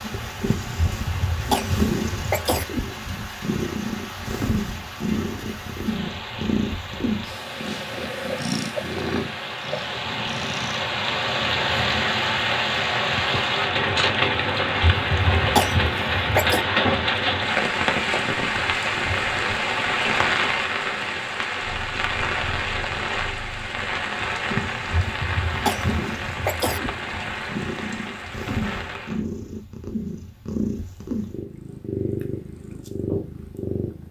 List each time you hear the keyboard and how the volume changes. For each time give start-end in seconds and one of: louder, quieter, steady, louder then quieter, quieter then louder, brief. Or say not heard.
not heard.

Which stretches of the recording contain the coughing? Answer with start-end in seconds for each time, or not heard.
0.8-2.6, 14.9-16.6, 24.9-26.8.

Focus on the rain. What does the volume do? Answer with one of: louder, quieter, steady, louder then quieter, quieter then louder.
louder then quieter.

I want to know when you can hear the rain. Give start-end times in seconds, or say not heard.
0.0-29.2.